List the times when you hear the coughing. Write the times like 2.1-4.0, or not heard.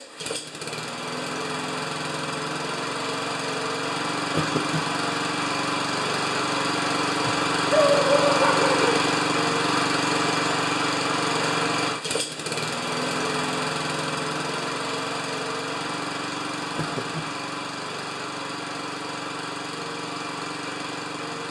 4.3-4.8, 16.8-17.4.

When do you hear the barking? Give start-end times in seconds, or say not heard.
7.2-9.1.